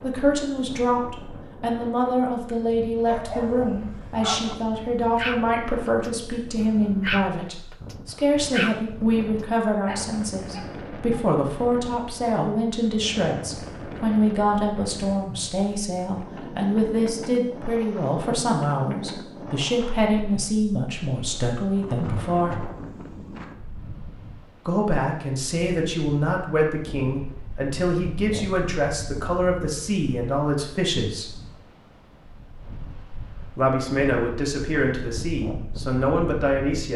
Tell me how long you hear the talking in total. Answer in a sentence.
The talking can be heard for 33 seconds in total.